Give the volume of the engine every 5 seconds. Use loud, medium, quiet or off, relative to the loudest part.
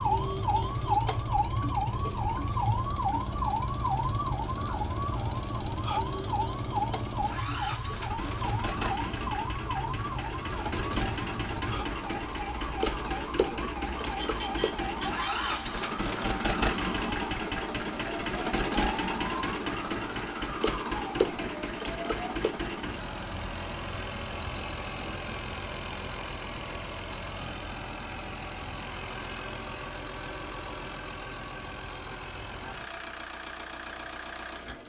medium, medium, loud, loud, loud, medium, medium.